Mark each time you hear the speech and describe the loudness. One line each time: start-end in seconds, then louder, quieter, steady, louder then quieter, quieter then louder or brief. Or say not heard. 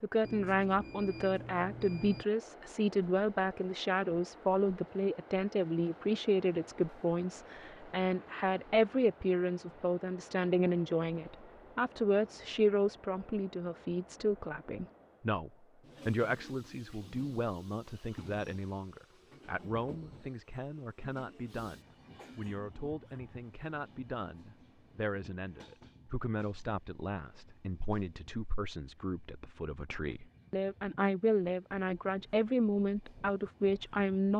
0.0-34.3 quieter then louder.